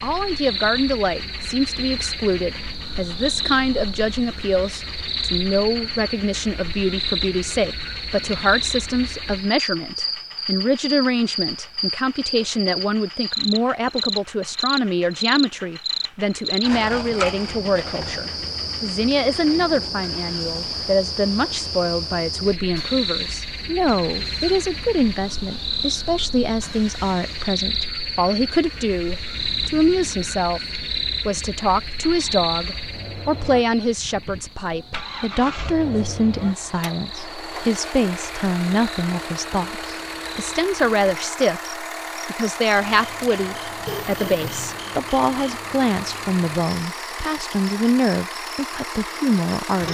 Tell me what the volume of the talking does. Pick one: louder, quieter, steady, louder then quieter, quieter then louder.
steady.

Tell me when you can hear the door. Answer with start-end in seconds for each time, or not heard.
43.9-44.8.